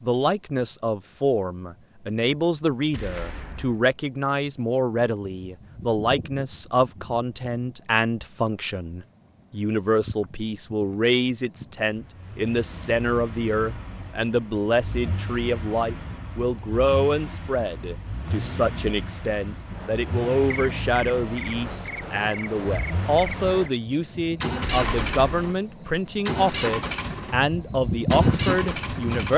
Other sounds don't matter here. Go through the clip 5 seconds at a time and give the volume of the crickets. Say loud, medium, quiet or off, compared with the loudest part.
quiet, quiet, quiet, quiet, medium, loud.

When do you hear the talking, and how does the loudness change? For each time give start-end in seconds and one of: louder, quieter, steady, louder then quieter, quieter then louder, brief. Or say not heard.
0.0-29.3 steady.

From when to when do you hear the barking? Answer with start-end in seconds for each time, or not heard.
not heard.